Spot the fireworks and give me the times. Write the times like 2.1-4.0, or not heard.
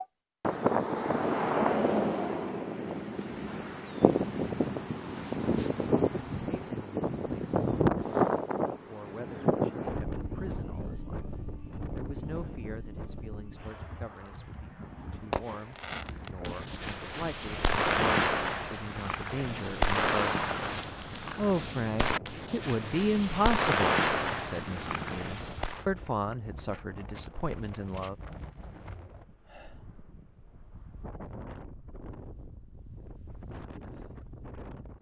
15.3-25.9.